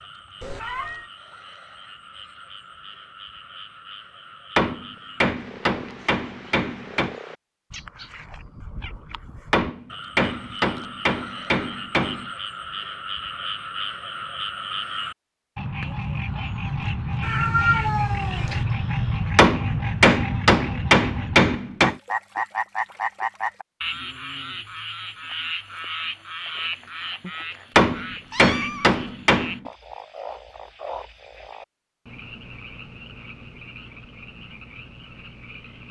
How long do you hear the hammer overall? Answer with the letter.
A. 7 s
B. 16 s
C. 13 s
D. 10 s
D.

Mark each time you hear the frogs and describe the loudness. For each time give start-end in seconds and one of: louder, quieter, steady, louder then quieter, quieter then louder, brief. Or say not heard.
0.0-35.8 louder then quieter.